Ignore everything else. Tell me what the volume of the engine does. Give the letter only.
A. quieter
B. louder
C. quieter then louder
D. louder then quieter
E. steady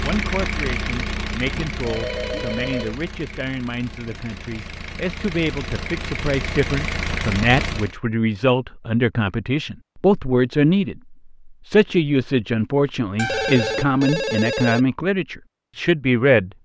C.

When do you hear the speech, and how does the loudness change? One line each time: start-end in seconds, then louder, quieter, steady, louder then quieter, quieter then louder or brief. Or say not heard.
0.0-16.5 louder.